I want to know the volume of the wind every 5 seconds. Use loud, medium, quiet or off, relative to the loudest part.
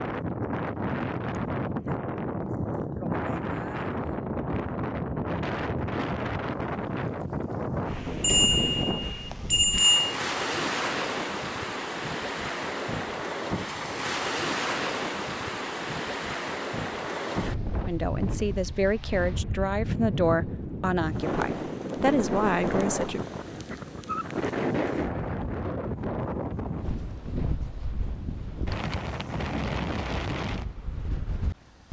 loud, loud, loud, loud, loud, loud, medium.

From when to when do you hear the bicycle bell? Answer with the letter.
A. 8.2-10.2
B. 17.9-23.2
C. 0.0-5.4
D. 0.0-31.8
A.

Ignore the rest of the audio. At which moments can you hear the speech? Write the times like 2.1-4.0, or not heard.
17.9-23.2.